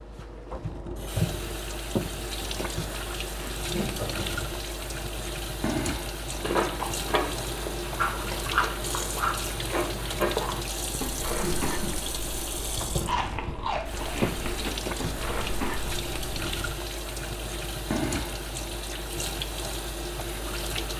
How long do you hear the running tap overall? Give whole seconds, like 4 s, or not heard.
21 s.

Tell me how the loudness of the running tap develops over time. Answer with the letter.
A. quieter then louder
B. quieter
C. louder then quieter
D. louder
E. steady
E.